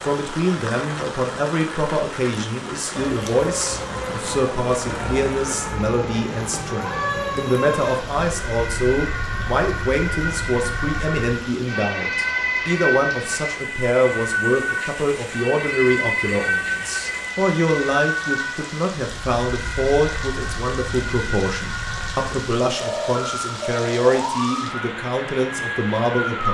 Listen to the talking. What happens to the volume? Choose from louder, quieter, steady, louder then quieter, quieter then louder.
steady.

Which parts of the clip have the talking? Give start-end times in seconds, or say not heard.
0.0-26.4.